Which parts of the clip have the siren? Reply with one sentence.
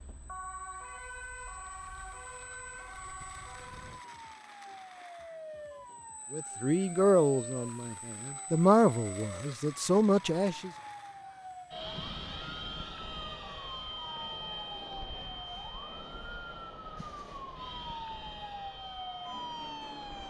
You can hear the siren from 0.0 to 20.2 s.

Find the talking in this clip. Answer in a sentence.
The talking can be heard from 6.3 to 10.7 s.